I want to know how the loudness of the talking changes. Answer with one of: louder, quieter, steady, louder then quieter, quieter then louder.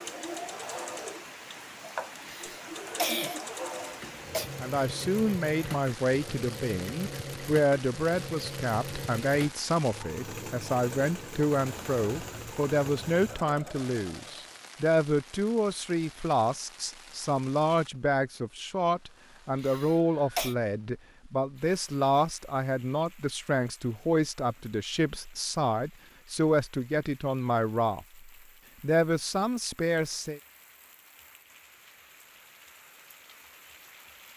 steady.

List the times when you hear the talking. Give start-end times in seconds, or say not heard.
4.6-30.4.